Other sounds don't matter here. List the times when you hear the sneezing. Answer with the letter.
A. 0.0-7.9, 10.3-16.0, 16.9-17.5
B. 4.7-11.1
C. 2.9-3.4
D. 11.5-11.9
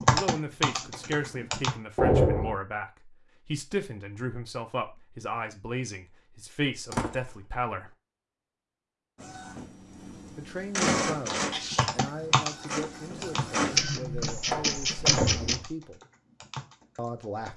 D.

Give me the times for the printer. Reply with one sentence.
You can hear the printer from 9.2 to 15.6 s.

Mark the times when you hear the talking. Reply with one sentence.
You can hear the talking from 0.0 to 7.9 s, from 10.3 to 16.0 s and from 16.9 to 17.5 s.